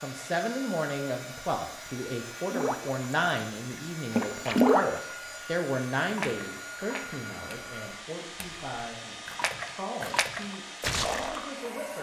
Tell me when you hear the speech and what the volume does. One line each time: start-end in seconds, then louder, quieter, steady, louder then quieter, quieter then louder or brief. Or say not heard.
0.0-11.9 quieter.